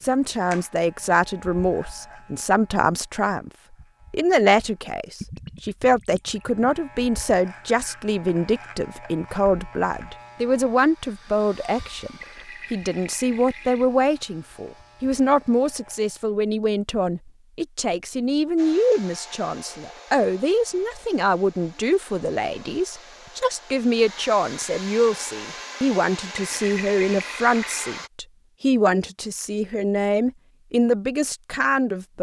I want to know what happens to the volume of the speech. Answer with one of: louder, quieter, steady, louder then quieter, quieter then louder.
steady.